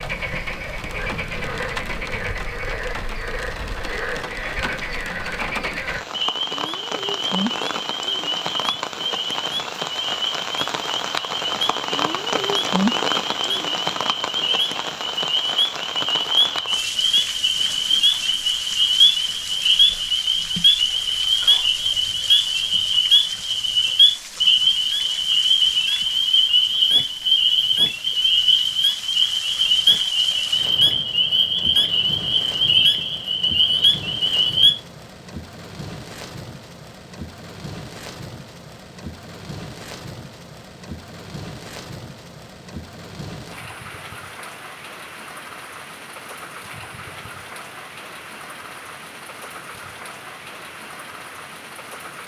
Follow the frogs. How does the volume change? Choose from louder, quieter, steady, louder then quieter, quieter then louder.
louder.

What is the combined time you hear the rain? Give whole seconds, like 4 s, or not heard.
52 s.